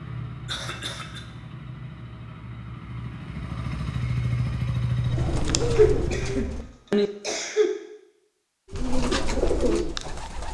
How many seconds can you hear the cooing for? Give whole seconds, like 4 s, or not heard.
4 s.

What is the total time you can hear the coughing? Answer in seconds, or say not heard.
3 s.